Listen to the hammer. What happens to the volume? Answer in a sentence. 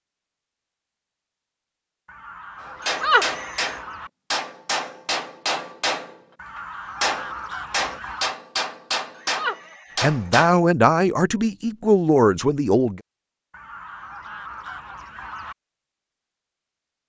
The volume of the hammer stays about the same.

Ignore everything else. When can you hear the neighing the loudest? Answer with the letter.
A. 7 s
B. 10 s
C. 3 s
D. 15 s
C.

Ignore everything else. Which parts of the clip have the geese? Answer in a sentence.
The geese can be heard from 2.0 to 4.1 s, from 6.3 to 8.3 s and from 13.5 to 15.6 s.